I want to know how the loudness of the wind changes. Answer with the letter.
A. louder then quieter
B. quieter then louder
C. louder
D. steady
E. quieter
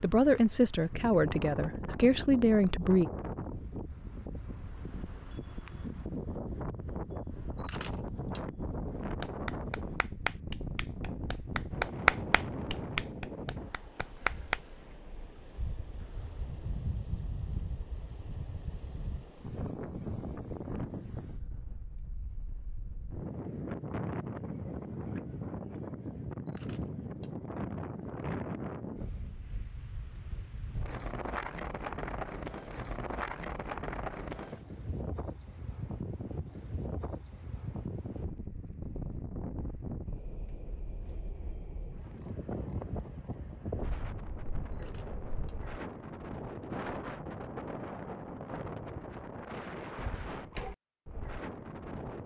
D.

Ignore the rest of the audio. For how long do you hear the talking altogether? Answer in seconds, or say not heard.
3 s.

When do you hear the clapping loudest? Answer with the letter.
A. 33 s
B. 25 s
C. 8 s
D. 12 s
D.